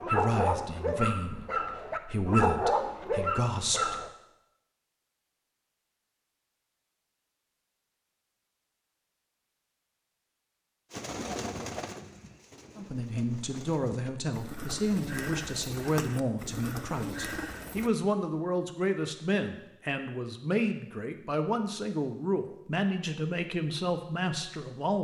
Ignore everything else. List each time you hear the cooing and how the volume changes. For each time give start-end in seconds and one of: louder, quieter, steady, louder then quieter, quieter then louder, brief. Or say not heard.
10.9-17.9 quieter then louder.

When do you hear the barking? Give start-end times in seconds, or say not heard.
0.0-4.1.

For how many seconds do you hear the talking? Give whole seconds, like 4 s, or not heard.
16 s.